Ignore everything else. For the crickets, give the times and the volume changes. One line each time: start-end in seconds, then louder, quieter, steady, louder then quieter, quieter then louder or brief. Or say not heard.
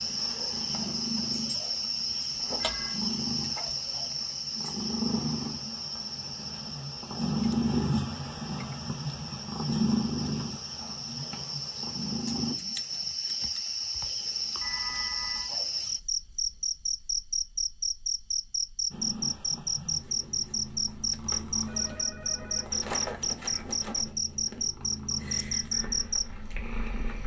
0.0-27.2 quieter then louder.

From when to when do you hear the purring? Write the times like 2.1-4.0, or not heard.
0.0-12.6, 18.9-27.2.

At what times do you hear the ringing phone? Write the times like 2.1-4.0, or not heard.
2.3-3.0, 14.6-15.5, 21.6-23.7.